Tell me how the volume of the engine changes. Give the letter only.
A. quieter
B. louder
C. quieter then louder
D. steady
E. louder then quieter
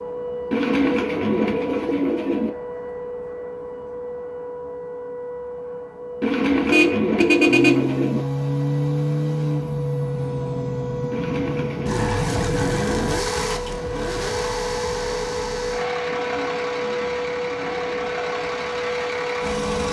A.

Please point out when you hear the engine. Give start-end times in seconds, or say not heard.
7.5-19.8.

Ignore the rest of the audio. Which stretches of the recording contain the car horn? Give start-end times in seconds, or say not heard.
6.7-7.8.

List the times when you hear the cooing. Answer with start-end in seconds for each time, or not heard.
0.5-2.5, 6.2-8.2, 11.1-13.1, 16.1-18.1.